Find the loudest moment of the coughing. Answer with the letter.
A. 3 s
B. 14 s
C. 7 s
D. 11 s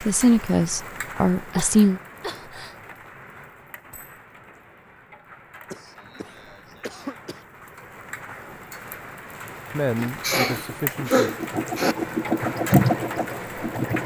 D.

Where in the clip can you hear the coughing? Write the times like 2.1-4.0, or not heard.
1.5-2.8, 5.7-7.5, 10.0-11.9.